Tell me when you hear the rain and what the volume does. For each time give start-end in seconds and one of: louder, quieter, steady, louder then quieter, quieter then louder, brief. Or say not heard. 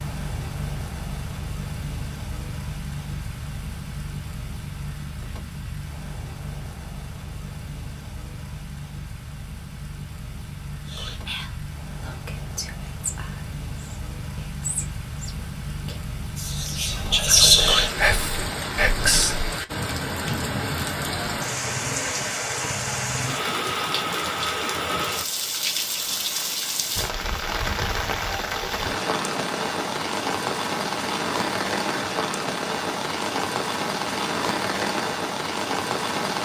0.0-36.4 louder.